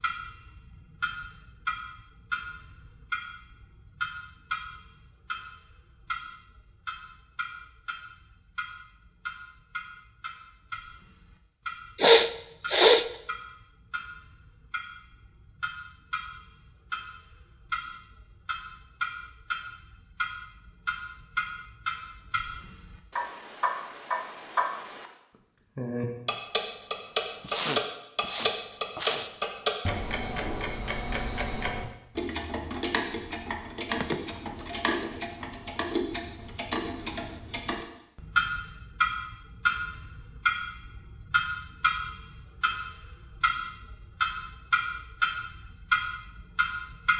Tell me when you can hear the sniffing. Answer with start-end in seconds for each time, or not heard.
11.9-13.1, 27.4-29.3, 34.0-34.7.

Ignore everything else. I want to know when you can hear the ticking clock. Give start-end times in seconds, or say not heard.
0.0-25.1, 25.8-47.1.